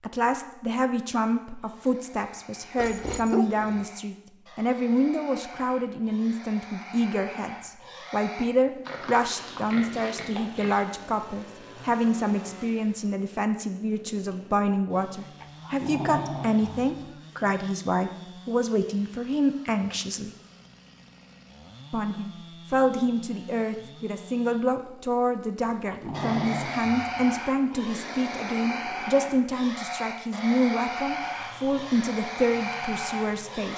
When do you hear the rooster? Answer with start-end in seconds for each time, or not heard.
not heard.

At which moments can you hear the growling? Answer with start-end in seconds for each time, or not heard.
2.8-3.9, 15.4-16.9, 25.6-27.4.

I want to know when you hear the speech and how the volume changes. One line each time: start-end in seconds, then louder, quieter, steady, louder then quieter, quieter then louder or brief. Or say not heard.
0.0-20.3 steady
21.9-33.7 steady.